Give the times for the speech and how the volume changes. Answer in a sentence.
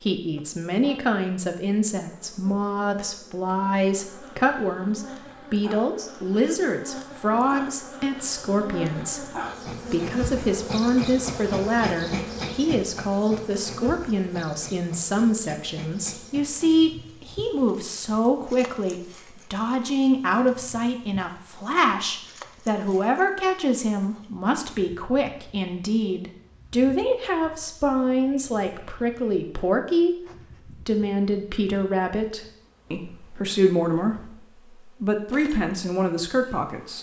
You can hear the speech from 0.0 to 36.9 s, at a steady volume.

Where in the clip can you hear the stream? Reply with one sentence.
The stream can't be heard in this clip.